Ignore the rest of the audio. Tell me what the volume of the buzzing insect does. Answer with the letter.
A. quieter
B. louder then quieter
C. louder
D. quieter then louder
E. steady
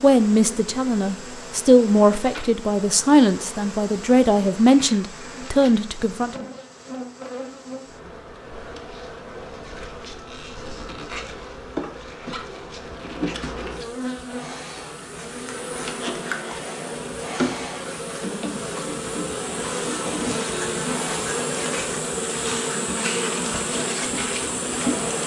C.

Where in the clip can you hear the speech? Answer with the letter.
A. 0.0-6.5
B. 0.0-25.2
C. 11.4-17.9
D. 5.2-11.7
A.